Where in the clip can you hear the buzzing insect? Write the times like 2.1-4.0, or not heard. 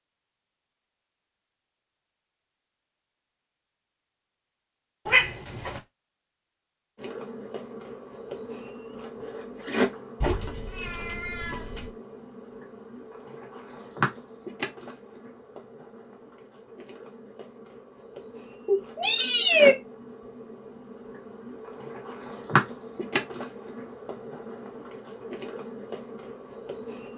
7.0-27.1.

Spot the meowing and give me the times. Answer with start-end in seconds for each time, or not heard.
5.0-5.8, 10.2-11.9, 18.6-19.8.